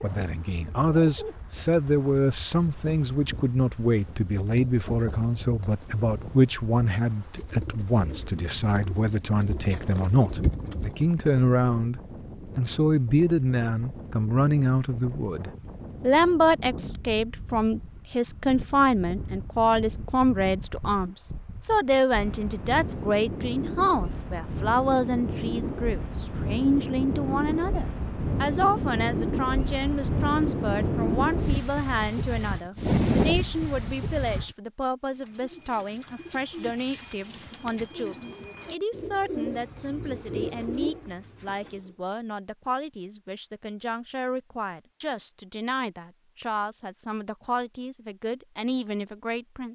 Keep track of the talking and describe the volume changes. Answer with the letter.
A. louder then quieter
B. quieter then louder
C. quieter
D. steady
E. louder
C.